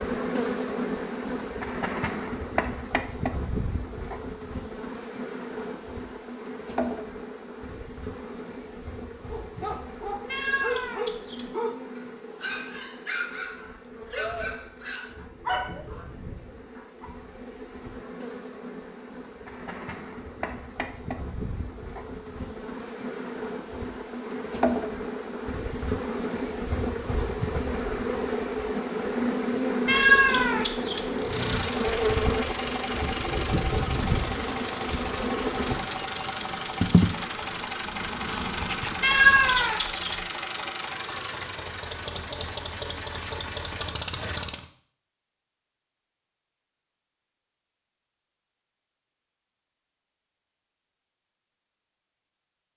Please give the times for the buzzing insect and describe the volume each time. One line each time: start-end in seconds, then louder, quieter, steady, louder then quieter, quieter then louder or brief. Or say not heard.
0.0-39.8 quieter then louder.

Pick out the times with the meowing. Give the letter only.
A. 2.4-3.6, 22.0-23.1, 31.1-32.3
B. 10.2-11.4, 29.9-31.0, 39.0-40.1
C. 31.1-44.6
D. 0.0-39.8
B.